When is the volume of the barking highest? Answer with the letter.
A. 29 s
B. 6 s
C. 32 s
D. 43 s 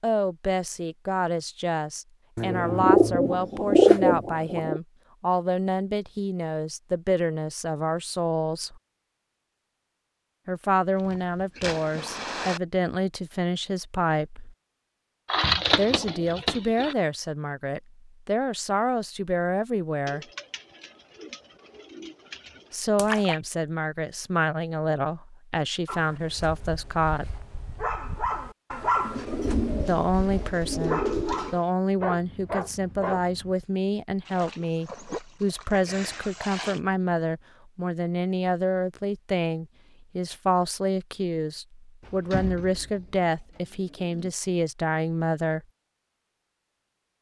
A.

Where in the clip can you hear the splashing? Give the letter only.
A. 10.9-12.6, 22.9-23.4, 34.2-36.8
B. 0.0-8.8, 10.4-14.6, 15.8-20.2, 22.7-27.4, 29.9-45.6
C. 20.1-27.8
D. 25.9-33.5
A.